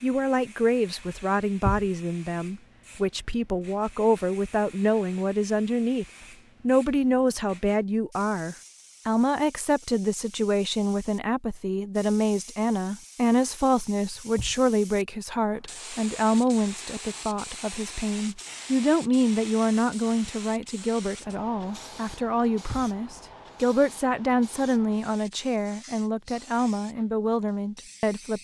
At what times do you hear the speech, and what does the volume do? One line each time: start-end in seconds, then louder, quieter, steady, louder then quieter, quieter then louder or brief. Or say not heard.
0.0-28.3 steady.